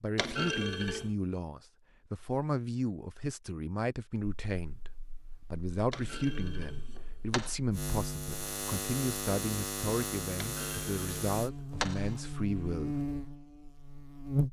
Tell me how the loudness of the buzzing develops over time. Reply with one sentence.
The volume of the buzzing goes up.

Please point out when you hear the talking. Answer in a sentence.
The talking can be heard from 0.0 to 12.9 s.